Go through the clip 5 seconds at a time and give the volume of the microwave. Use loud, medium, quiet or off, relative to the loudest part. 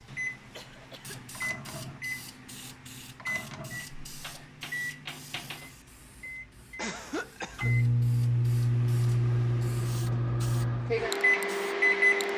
quiet, loud, loud.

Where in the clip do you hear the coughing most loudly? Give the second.
7 s.